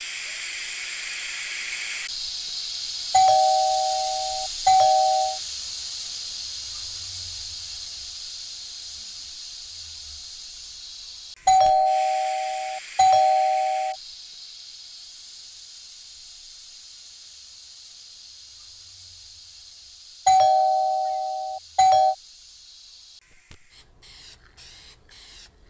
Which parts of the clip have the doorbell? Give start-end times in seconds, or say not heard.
3.1-5.4, 11.4-13.9, 20.2-22.1.